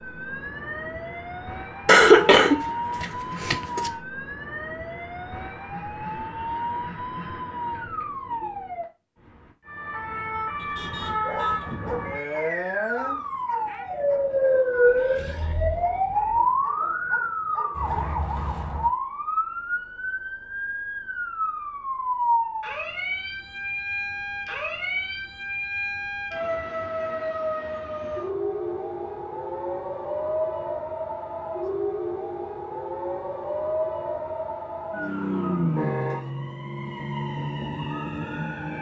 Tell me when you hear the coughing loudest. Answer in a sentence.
The volume of the coughing peaks at 2 seconds.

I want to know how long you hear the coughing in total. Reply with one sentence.
You can hear the coughing for 2 seconds altogether.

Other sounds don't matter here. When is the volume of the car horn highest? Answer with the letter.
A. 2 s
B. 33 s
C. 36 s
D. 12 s
C.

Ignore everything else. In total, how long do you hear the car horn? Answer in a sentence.
The car horn can be heard for 2 seconds in total.